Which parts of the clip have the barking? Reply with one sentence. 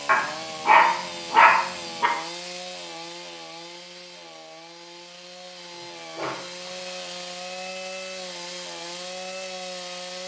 You can hear the barking from 0.1 to 2.1 s and from 5.8 to 7.0 s.